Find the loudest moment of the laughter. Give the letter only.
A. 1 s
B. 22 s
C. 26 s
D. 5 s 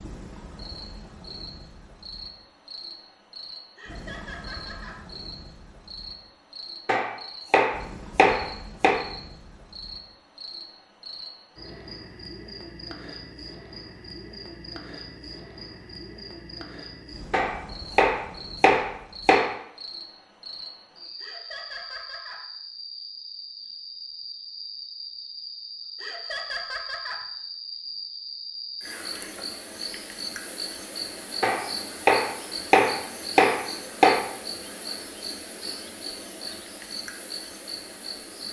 C.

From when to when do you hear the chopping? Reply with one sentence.
You can hear the chopping from 6.8 to 9.0 s, from 17.3 to 19.6 s and from 31.4 to 34.2 s.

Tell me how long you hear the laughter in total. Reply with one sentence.
The laughter can be heard for 4 seconds in total.